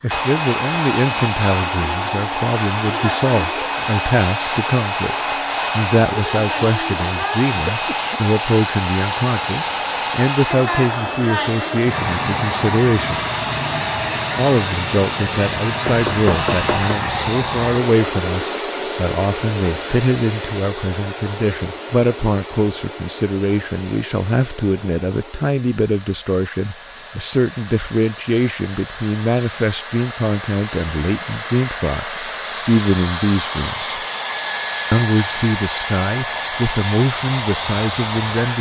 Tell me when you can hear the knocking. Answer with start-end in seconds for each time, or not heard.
15.8-16.9.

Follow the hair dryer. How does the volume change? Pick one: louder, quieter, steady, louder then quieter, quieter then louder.
quieter then louder.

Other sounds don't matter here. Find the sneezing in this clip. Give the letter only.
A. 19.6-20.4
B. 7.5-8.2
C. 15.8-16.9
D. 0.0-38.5
B.